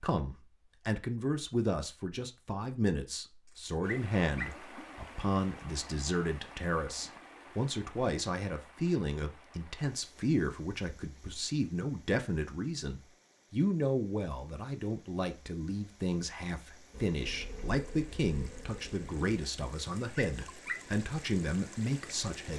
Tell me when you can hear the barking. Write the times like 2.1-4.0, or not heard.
3.5-4.5, 19.8-20.9.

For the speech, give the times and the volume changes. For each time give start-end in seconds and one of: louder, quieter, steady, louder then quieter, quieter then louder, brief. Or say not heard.
0.0-22.5 steady.